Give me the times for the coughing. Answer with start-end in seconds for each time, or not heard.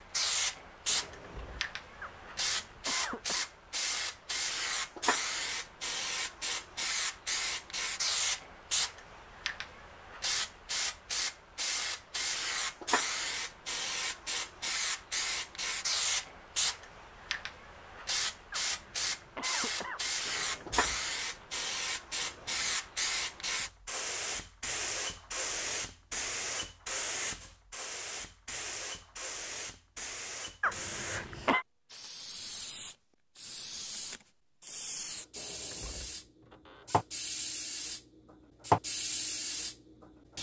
2.0-3.5, 18.5-20.1, 30.6-31.6.